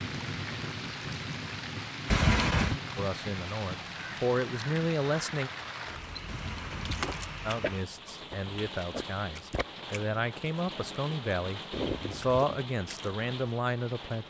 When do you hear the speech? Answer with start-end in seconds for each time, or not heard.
3.0-5.5, 7.5-14.2.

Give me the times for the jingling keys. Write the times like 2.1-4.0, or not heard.
2.0-2.8, 6.2-7.3, 11.8-12.4.